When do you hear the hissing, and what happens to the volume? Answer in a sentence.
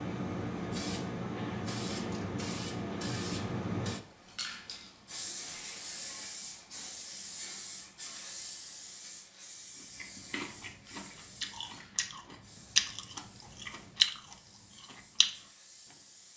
You can hear the hissing from 0.0 to 16.3 s, getting quieter.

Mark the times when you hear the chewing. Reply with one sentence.
You can hear the chewing from 9.8 to 15.3 s.